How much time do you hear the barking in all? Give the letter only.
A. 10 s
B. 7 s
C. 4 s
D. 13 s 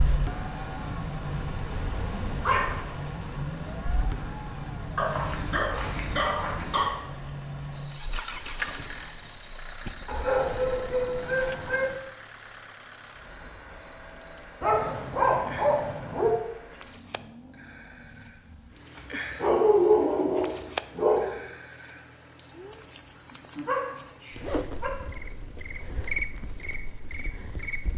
A.